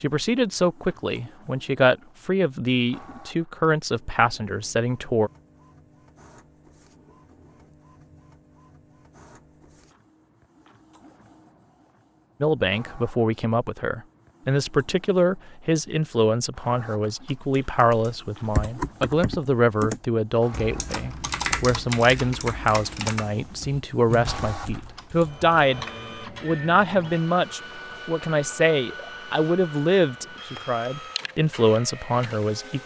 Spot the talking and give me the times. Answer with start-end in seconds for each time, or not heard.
0.0-5.3, 12.4-32.8.